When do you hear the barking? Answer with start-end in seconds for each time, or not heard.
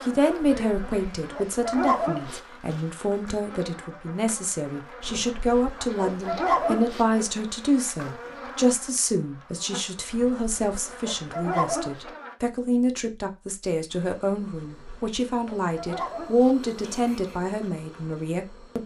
0.4-2.4, 5.0-7.0, 10.1-12.0, 14.5-16.6.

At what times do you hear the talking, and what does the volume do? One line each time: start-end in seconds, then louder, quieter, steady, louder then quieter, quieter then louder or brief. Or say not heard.
0.0-18.8 steady.